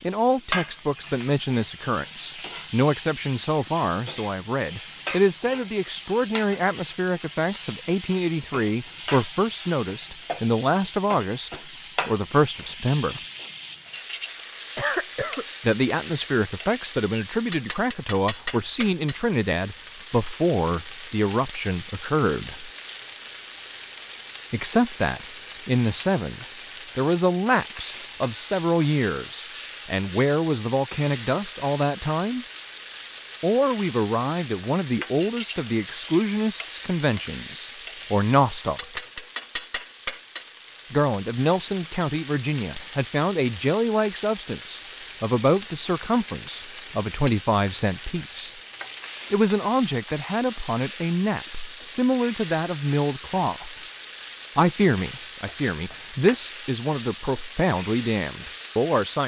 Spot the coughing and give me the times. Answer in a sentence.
The coughing can be heard from 14.8 to 15.4 s.